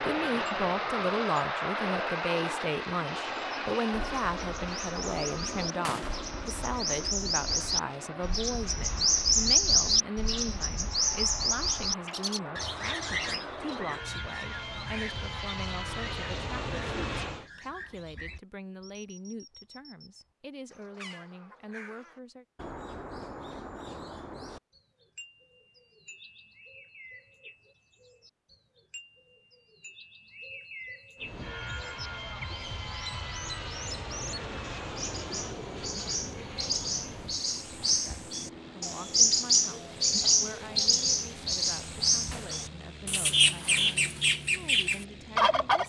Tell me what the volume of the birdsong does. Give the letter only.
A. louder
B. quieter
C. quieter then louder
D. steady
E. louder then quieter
C.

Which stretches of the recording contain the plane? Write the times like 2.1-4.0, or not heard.
0.0-17.5, 31.1-45.8.